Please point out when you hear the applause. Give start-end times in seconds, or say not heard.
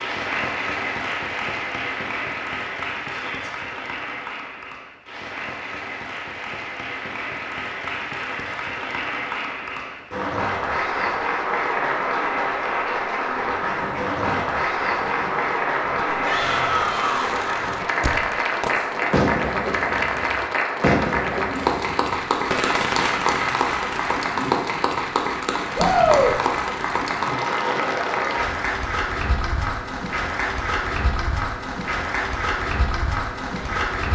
0.0-34.1.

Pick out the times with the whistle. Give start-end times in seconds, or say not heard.
not heard.